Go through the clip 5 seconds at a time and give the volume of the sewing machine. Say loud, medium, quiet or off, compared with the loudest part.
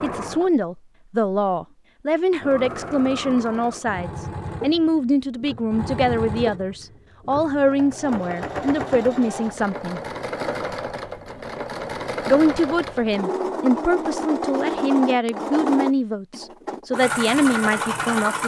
medium, medium, loud, loud.